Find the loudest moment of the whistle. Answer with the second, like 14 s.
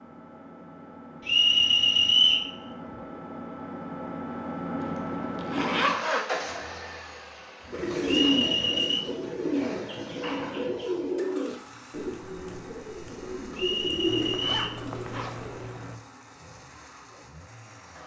2 s.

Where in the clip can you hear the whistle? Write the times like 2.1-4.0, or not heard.
1.2-2.5, 8.1-9.0, 13.6-14.8.